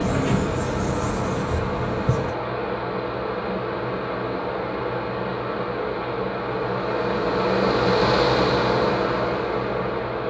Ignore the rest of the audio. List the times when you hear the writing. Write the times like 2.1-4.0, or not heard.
0.0-2.4.